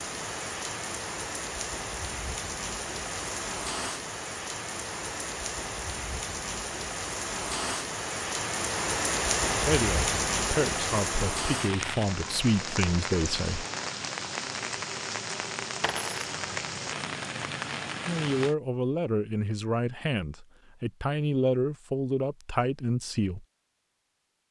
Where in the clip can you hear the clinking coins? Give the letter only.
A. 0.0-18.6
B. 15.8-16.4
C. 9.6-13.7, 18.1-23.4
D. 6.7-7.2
B.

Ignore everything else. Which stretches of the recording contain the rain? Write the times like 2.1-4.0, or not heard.
0.0-18.6.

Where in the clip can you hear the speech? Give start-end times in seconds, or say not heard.
9.6-13.7, 18.1-23.4.